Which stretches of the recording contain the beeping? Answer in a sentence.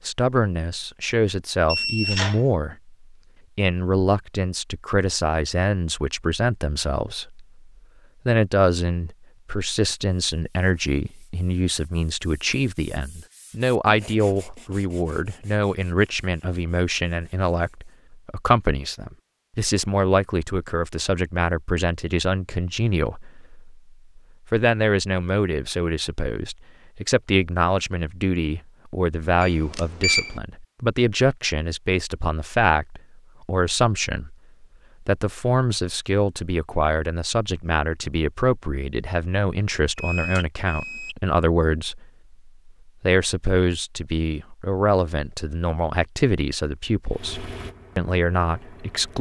The beeping can be heard from 1.6 to 2.4 s, from 29.4 to 30.4 s and from 40.0 to 41.1 s.